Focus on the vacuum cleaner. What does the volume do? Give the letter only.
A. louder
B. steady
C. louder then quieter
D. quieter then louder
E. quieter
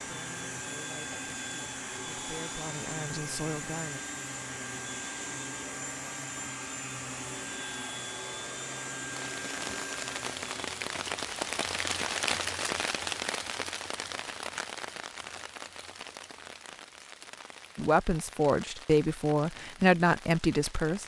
B.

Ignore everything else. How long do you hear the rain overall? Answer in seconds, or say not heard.
12 s.